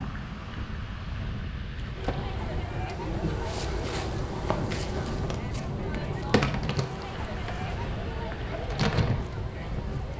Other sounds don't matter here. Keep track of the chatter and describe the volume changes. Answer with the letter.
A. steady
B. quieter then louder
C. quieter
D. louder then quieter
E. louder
A.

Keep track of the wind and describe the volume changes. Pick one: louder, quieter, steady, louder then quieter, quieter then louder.
steady.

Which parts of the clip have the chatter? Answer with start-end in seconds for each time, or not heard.
1.9-10.1.